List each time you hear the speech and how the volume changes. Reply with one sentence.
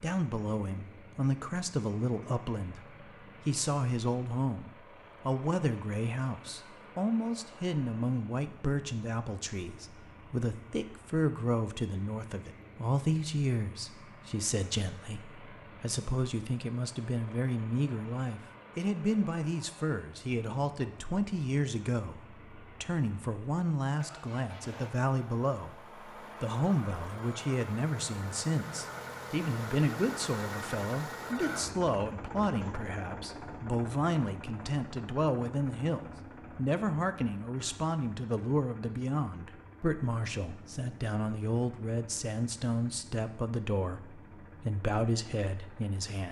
You can hear the speech from 0.0 to 46.2 s, at a steady volume.